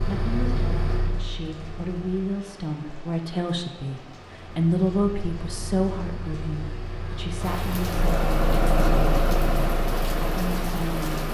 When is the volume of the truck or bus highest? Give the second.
9 s.